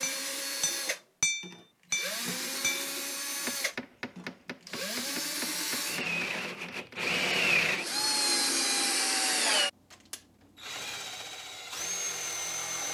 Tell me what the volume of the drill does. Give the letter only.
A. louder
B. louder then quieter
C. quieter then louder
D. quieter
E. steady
B.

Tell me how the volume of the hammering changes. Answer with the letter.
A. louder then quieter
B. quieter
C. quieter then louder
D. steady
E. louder
B.